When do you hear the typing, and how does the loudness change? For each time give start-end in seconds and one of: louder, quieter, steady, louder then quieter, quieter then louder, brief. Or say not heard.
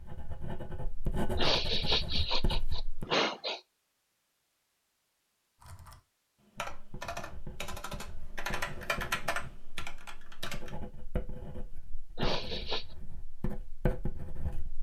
5.6-10.8 louder then quieter.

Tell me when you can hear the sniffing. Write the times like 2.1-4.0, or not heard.
1.4-3.6, 12.2-12.9.